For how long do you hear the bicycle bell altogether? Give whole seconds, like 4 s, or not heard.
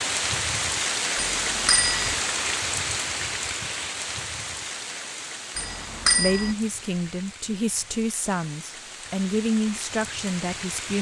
2 s.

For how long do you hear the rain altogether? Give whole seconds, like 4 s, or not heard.
11 s.